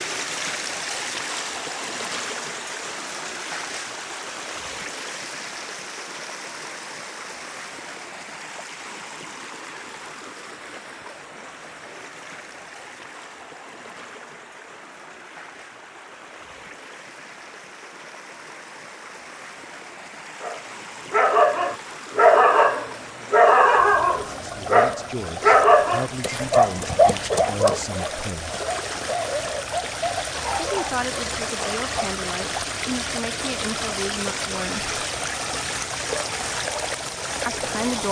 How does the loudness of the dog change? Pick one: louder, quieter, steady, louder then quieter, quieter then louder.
quieter.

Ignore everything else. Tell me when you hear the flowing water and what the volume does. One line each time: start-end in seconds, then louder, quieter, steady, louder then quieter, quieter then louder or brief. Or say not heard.
0.0-38.0 quieter then louder.